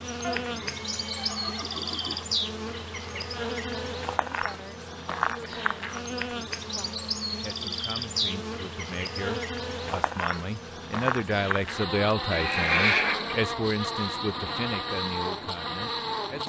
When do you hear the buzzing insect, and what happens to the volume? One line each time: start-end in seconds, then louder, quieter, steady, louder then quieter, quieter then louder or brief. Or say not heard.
0.0-16.4 steady.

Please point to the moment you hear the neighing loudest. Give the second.
13 s.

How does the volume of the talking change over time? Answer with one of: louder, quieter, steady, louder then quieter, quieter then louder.
louder then quieter.